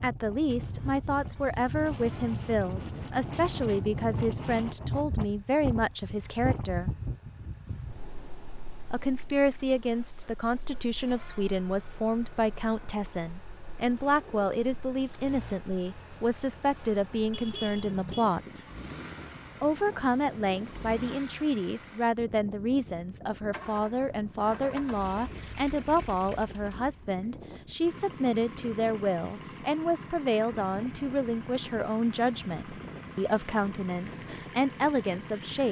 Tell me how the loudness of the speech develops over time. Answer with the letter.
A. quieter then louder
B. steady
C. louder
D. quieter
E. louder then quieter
B.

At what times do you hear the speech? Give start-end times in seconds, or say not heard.
0.0-6.9, 8.9-18.6, 19.6-35.6.